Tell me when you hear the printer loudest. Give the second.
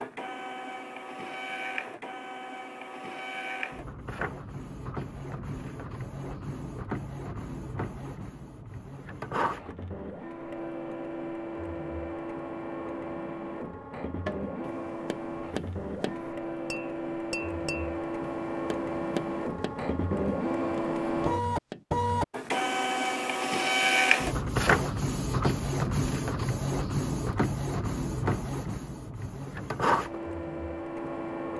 24 s.